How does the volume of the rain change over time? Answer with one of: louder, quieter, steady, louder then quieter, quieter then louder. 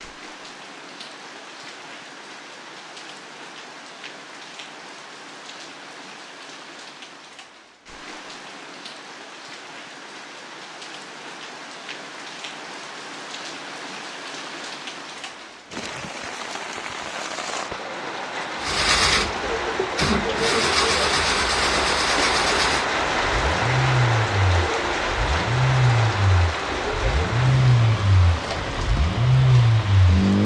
louder.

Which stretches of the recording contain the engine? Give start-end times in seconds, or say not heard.
18.6-30.4.